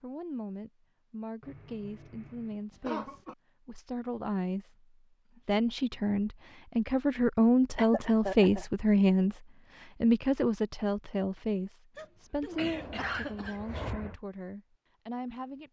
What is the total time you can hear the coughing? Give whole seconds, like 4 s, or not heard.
5 s.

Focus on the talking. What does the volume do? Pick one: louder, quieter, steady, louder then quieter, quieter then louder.
louder then quieter.